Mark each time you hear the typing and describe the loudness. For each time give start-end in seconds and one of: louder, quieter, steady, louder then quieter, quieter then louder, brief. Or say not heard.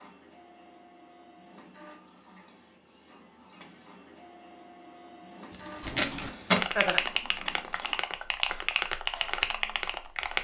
5.8-10.4 steady.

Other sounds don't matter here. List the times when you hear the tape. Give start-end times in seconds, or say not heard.
5.5-6.7.